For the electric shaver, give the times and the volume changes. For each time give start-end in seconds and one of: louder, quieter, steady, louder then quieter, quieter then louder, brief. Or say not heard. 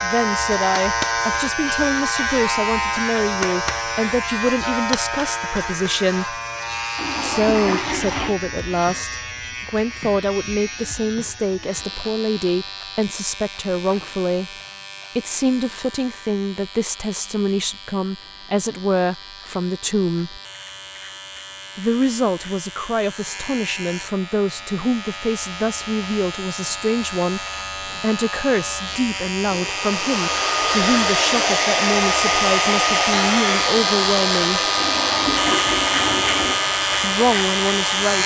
0.0-38.2 quieter then louder.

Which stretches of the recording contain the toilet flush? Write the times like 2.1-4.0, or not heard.
7.0-8.3, 34.8-36.6.